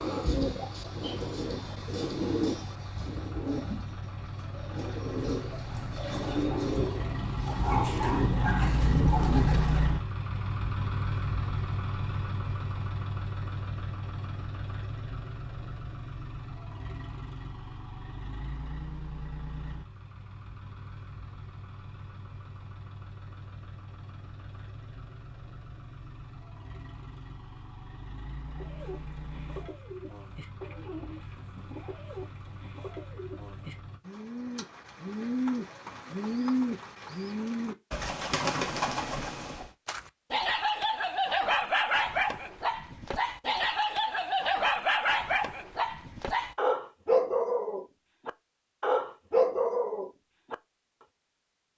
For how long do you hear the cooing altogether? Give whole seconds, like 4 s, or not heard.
21 s.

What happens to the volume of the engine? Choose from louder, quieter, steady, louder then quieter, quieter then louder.
louder then quieter.